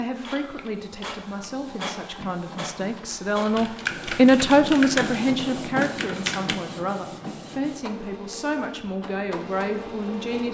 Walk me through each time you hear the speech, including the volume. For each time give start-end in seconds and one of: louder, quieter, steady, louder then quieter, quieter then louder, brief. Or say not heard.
0.0-10.4 louder then quieter.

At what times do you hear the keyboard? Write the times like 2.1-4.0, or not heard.
3.1-6.5.